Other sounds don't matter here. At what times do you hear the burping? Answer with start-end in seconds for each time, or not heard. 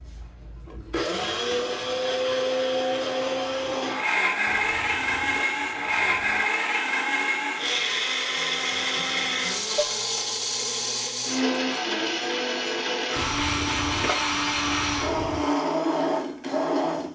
not heard.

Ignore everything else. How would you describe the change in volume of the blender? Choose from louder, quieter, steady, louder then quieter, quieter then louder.
steady.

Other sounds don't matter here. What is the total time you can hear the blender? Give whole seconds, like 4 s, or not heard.
17 s.